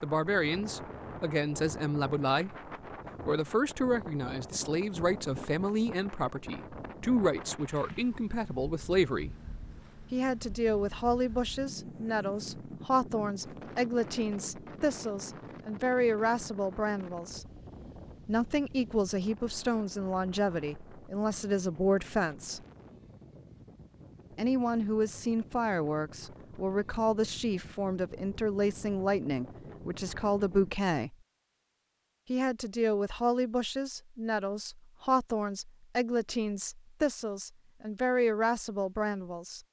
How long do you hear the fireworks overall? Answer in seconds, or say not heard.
not heard.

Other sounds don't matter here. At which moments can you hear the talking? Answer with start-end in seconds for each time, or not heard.
0.0-2.5, 3.2-9.3, 10.1-17.4, 18.2-22.6, 24.4-31.1, 32.2-39.6.